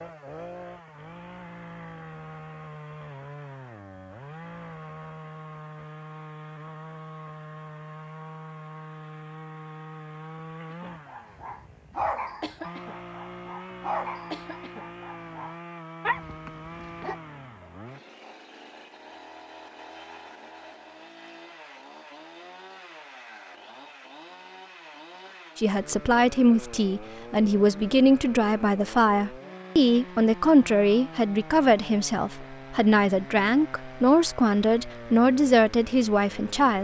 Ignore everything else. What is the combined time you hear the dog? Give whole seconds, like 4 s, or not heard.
7 s.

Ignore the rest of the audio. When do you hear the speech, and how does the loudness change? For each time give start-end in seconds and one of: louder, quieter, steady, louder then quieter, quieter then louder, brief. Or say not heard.
25.6-36.7 steady.